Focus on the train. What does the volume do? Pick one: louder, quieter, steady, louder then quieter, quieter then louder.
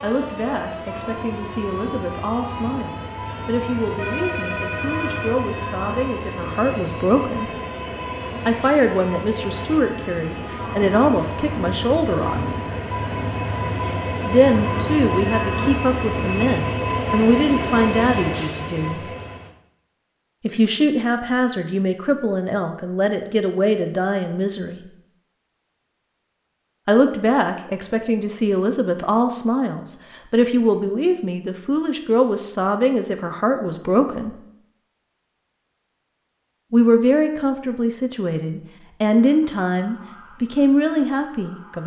louder.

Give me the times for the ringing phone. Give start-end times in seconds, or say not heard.
4.0-5.5.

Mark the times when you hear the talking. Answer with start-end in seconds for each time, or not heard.
0.0-7.5, 8.4-12.4, 14.2-19.1, 20.4-24.9, 26.9-34.4, 36.7-41.8.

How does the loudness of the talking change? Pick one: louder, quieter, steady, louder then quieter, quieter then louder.
louder.